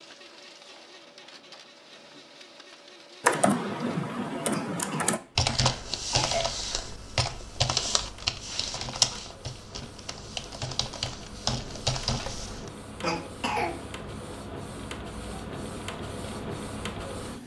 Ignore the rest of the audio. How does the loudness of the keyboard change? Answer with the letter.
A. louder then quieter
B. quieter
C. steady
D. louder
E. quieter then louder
C.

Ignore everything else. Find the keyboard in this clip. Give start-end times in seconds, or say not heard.
3.2-12.7.